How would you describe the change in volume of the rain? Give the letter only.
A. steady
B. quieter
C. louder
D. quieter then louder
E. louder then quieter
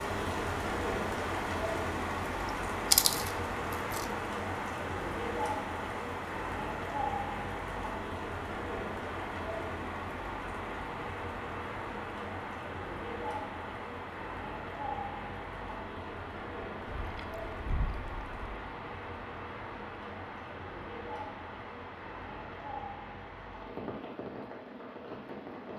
B.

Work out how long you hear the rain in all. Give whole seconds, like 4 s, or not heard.
26 s.